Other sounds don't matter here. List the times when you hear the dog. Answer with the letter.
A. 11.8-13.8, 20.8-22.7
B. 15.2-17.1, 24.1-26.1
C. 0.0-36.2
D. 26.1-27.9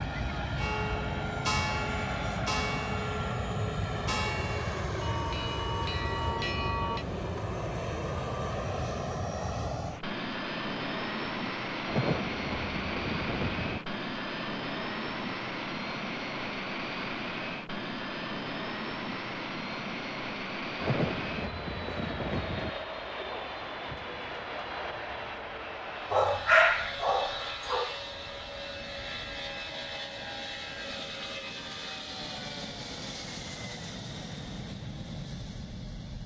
D.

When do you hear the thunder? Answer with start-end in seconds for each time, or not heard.
11.8-13.8, 20.8-22.7.